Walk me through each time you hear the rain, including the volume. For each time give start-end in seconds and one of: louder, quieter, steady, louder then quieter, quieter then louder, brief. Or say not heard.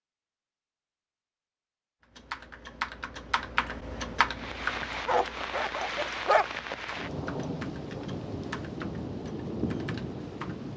4.3-10.7 steady.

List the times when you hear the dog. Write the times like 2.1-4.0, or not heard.
5.0-6.5.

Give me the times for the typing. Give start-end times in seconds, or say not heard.
2.0-10.7.